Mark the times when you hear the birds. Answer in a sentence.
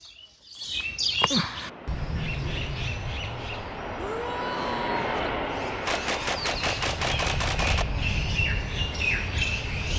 The birds can be heard from 0.0 to 9.9 s.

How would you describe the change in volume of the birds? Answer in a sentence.
The loudness of the birds goes down, then up.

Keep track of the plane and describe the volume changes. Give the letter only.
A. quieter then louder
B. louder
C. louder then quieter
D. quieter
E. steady
C.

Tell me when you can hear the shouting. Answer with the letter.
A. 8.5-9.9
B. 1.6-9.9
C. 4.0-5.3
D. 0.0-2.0
C.